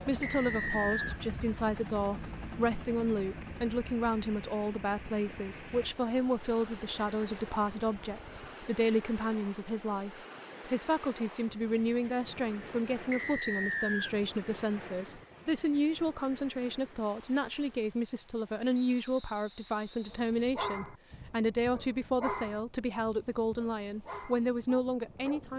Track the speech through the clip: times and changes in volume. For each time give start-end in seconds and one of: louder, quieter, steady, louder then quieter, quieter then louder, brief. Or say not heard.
0.1-25.5 steady.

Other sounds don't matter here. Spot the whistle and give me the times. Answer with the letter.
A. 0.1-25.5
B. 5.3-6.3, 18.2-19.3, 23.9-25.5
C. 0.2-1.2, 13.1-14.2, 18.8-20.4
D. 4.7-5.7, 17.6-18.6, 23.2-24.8
C.